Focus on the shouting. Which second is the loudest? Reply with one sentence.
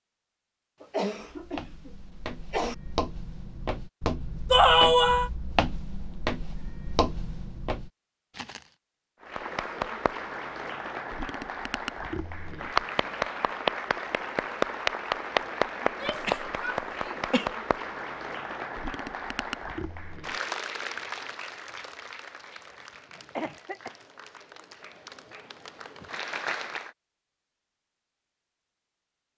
The loudest moment of the shouting is at 5 seconds.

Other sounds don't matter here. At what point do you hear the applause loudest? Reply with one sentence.
The volume of the applause peaks at 15 seconds.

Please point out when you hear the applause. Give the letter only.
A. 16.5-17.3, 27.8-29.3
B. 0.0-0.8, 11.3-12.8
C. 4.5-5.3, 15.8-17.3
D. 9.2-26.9
D.